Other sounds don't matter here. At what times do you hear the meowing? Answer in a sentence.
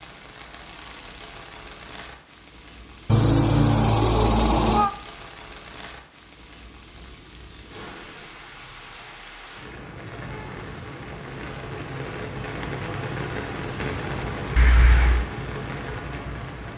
The meowing can be heard from 3.0 to 4.9 s and from 14.6 to 15.2 s.